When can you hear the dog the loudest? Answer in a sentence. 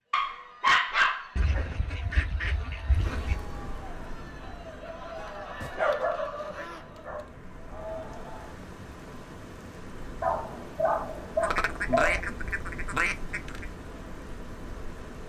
The loudest moment of the dog is at 1 second.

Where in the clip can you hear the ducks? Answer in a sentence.
You can hear the ducks from 1.4 to 3.4 s, from 5.2 to 6.9 s and from 11.4 to 13.8 s.